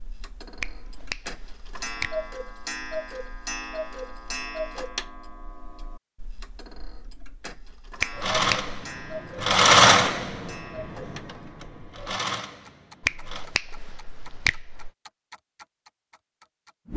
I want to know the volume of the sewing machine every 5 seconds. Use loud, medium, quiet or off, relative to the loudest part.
off, loud, quiet, off.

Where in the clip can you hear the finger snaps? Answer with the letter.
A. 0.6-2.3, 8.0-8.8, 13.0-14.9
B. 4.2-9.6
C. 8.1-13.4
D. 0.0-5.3
A.